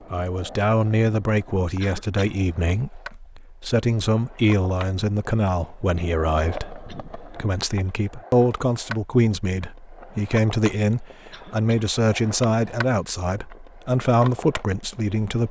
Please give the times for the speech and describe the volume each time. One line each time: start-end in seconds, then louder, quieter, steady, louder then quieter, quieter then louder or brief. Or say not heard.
0.1-15.4 steady.